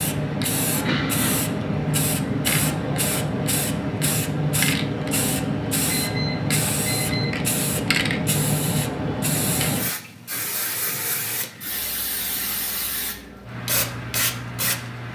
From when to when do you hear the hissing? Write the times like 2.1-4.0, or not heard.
0.0-15.1.